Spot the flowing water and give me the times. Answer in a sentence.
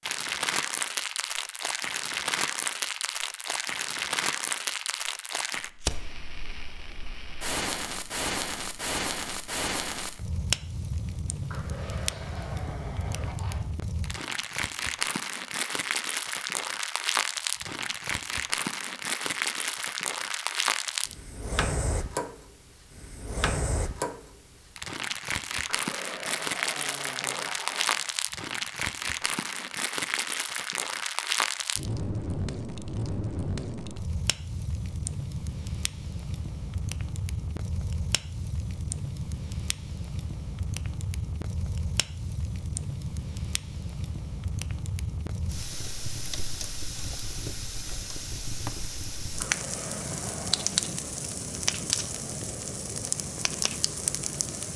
You can't hear the flowing water here.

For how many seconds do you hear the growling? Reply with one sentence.
The growling can be heard for 6 seconds in total.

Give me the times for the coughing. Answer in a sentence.
You can't hear the coughing here.